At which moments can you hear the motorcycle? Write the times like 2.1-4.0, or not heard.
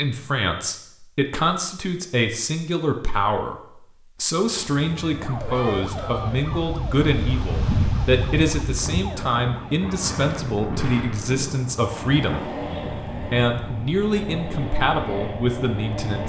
10.4-16.2.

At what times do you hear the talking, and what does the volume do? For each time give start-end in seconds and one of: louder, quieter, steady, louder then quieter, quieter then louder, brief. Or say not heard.
0.0-16.2 steady.